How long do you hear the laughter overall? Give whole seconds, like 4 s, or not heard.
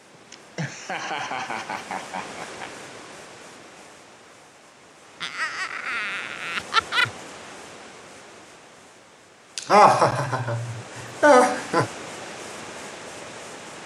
7 s.